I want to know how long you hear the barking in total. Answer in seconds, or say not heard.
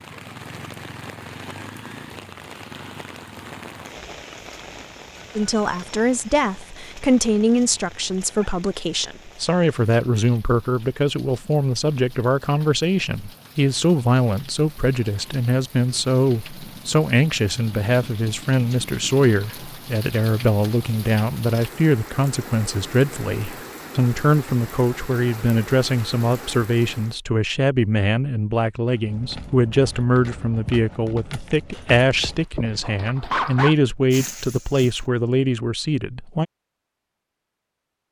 2 s.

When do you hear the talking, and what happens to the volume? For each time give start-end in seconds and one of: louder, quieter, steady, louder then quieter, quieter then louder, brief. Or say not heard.
5.3-36.5 steady.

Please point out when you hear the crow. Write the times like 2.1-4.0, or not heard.
not heard.